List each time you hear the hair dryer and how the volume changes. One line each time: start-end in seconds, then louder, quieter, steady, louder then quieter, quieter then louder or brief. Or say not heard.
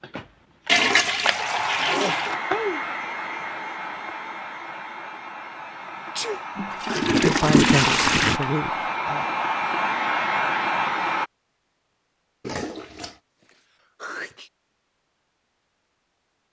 0.0-11.3 quieter then louder.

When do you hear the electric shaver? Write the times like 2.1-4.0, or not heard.
not heard.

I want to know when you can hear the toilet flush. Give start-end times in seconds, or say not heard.
0.7-2.4, 6.5-8.4, 12.4-13.2.